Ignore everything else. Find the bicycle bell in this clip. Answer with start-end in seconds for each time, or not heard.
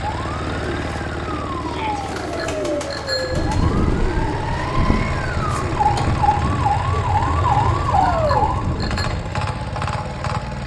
2.1-3.5, 8.1-9.1.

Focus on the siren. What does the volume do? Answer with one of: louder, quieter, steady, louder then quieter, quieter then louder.
louder.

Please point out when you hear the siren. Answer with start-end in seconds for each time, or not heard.
0.1-8.8.